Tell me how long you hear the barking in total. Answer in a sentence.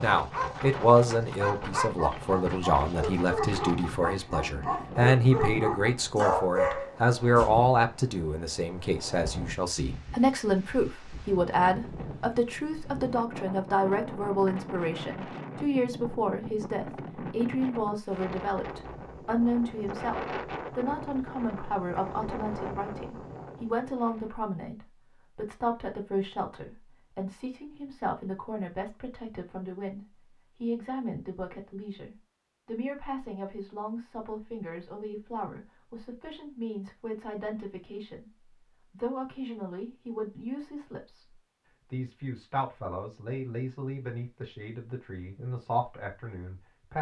You can hear the barking for 7 seconds altogether.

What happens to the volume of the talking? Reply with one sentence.
The volume of the talking goes down.